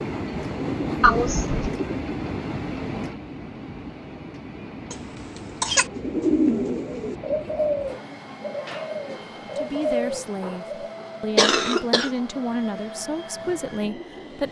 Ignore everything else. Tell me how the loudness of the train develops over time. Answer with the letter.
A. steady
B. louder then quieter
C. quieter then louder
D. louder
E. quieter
E.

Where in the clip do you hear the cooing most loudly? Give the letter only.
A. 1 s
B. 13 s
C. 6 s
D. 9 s
C.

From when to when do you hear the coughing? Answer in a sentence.
The coughing can be heard from 1.0 to 1.8 s, from 4.9 to 5.8 s and from 11.3 to 12.1 s.